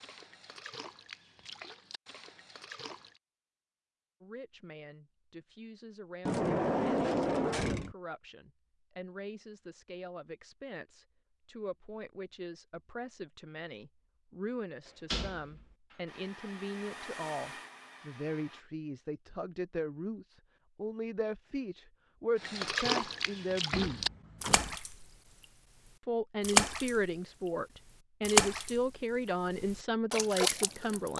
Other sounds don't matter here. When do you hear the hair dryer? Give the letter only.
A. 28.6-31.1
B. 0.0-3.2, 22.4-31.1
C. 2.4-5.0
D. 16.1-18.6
D.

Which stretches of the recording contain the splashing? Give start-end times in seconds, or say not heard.
0.0-3.2, 22.4-31.1.